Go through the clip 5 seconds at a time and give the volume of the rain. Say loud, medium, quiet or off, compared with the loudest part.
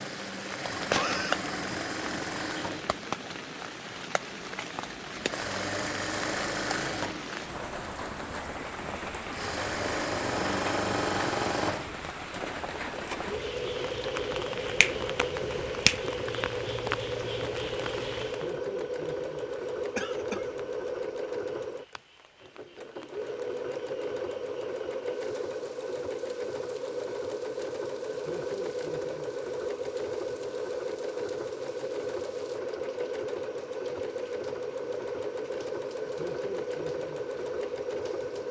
loud, loud, loud, loud, quiet, quiet, quiet, quiet.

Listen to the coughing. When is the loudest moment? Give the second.
1 s.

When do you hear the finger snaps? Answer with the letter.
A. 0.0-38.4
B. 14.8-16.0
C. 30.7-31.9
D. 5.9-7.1
B.